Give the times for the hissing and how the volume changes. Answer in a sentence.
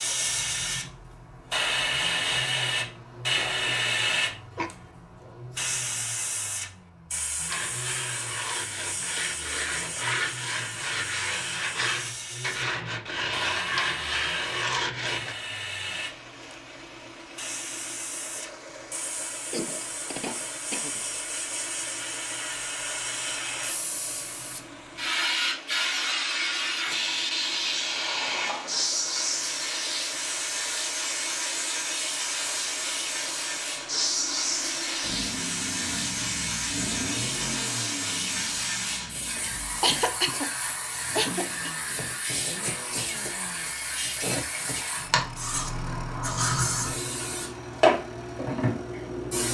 You can hear the hissing from 0.0 to 49.4 s, getting quieter then louder.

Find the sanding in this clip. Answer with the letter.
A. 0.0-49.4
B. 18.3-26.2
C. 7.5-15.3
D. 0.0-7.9
C.